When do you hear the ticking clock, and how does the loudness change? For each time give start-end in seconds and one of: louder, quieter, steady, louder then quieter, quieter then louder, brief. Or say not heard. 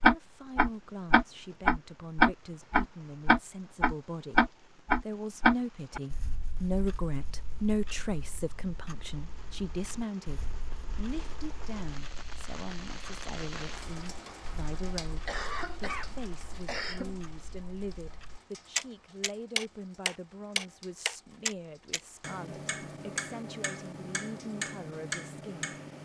0.0-26.0 quieter then louder.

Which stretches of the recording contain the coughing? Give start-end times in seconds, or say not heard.
15.2-17.2.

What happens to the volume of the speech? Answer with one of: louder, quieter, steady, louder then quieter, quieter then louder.
louder then quieter.